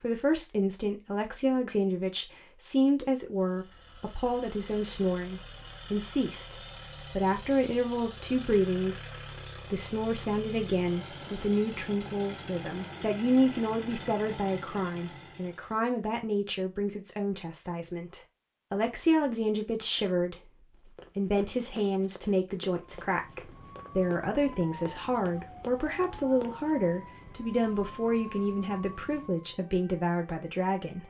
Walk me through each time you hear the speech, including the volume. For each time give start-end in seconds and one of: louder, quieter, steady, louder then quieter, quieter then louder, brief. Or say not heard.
0.0-31.0 steady.